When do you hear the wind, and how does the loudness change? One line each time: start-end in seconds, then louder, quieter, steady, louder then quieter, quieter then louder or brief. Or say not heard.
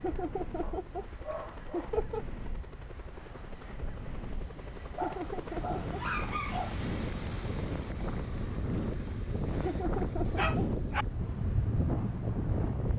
0.0-12.9 louder.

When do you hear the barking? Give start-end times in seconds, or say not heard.
0.6-2.0, 5.0-6.8, 9.4-11.1.